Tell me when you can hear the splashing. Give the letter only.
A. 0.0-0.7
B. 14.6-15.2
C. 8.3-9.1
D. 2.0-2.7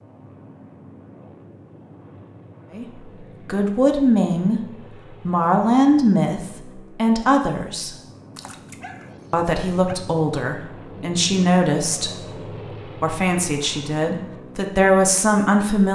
C.